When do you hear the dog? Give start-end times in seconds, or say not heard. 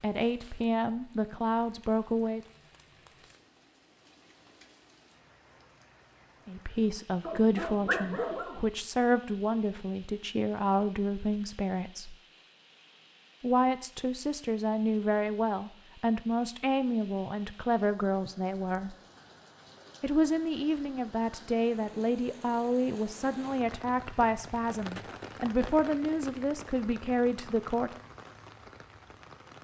7.2-8.7.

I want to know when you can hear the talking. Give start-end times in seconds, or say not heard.
0.0-2.4, 6.5-12.2, 13.4-18.9, 20.0-27.9.